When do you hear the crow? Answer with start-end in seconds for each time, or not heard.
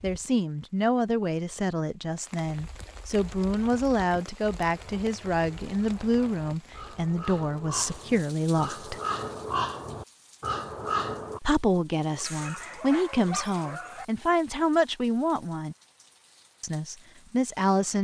3.1-11.4.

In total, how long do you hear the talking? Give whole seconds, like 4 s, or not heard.
15 s.